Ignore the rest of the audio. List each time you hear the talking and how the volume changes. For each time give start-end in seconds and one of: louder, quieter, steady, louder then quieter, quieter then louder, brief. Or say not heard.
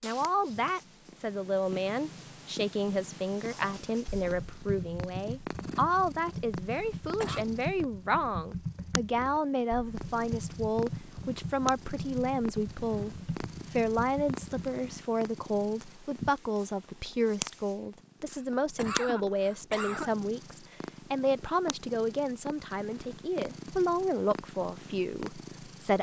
0.0-25.9 steady.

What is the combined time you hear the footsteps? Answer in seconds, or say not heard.
not heard.